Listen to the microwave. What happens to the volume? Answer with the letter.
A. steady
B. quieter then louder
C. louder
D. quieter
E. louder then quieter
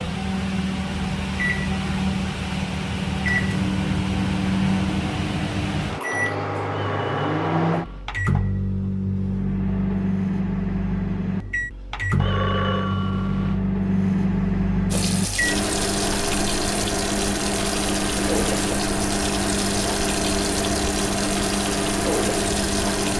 A.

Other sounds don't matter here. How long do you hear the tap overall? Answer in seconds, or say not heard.
8 s.